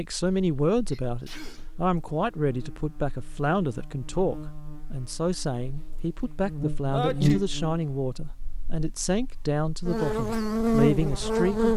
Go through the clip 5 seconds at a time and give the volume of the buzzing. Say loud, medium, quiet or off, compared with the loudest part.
quiet, medium, loud.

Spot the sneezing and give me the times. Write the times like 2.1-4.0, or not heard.
0.3-1.7, 6.9-7.5.